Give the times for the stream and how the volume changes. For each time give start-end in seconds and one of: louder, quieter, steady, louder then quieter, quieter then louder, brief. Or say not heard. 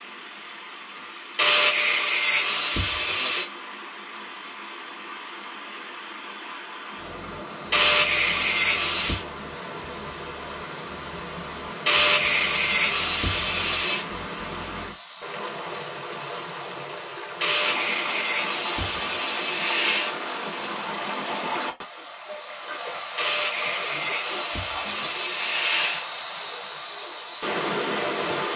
0.0-28.5 louder.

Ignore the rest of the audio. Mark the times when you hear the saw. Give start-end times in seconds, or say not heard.
1.4-3.5, 7.7-9.2, 11.8-14.1, 17.4-20.1, 23.1-26.1.